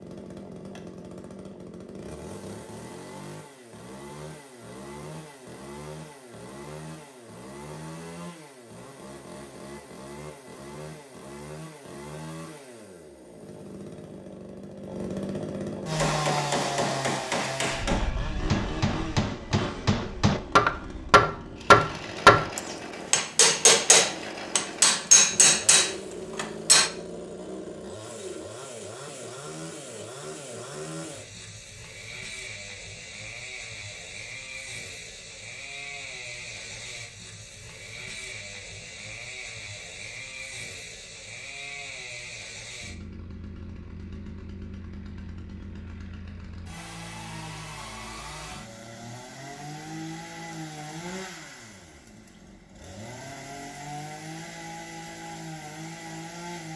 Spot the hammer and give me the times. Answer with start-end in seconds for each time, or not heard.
15.9-26.9.